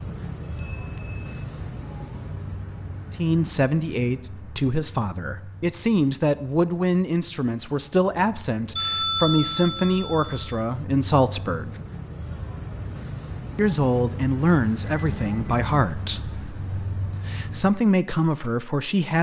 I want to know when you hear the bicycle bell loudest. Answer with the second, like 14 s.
9 s.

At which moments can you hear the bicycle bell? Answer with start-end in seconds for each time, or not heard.
0.6-1.4, 8.8-10.6, 14.8-15.8.